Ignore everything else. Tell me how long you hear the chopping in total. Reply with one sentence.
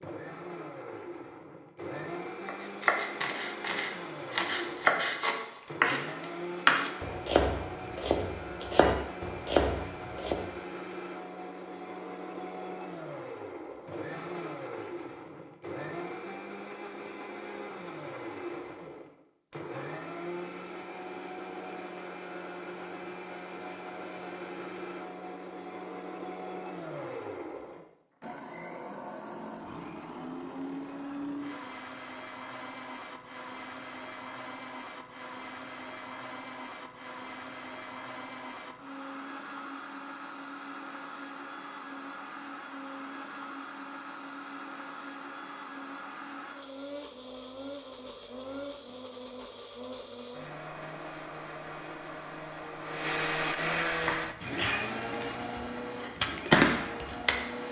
The chopping can be heard for 12 seconds in total.